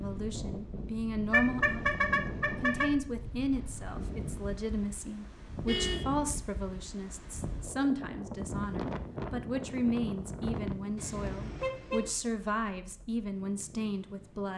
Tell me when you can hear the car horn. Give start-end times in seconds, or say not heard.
1.3-2.9, 5.7-6.2, 10.9-12.1.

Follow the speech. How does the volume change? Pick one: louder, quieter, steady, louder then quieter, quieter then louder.
steady.